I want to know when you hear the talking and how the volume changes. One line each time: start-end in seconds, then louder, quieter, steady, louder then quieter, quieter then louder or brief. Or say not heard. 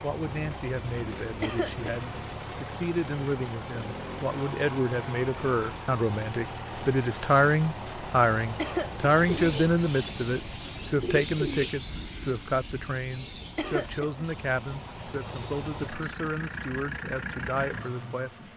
0.0-18.5 louder then quieter.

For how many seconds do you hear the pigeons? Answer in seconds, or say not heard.
7 s.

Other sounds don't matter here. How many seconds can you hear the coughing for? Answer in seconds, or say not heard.
2 s.